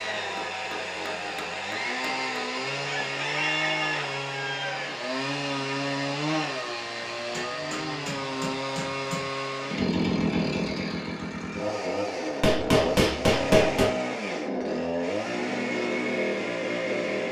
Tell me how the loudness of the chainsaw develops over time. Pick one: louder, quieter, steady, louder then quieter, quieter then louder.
steady.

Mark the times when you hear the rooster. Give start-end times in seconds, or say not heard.
2.8-4.8.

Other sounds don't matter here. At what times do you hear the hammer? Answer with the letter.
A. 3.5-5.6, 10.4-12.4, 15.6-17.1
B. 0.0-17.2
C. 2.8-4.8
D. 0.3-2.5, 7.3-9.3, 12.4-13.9
D.